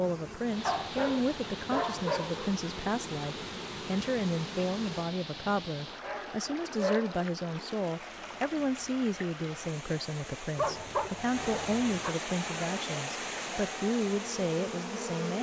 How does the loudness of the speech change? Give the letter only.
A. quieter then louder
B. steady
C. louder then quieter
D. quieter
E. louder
B.